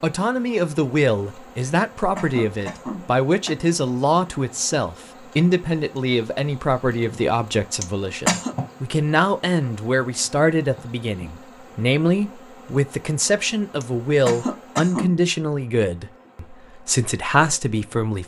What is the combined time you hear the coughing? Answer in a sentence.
You can hear the coughing for 4 seconds altogether.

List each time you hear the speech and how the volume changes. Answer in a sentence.
The speech can be heard from 0.0 to 18.2 s, at a steady volume.